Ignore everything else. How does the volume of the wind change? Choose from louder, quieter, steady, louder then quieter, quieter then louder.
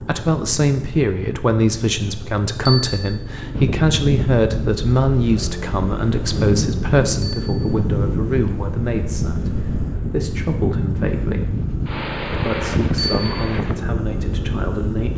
steady.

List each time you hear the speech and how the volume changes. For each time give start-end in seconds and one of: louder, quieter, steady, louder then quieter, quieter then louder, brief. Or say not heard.
0.0-11.6 quieter
12.3-15.1 brief.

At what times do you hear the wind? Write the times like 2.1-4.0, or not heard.
3.5-15.1.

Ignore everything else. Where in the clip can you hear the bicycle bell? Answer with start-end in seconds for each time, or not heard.
2.6-3.2, 7.2-7.8, 12.9-13.3.